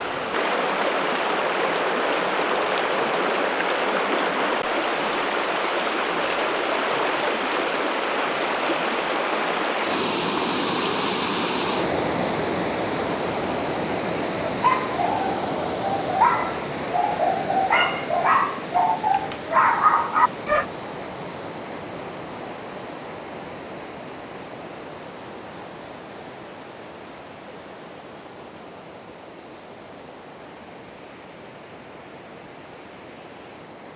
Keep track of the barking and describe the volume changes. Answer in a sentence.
The loudness of the barking goes up.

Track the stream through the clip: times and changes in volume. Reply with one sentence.
You can hear the stream from 0.0 to 33.9 s, getting quieter.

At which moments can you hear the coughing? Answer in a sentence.
The coughing can't be heard in this clip.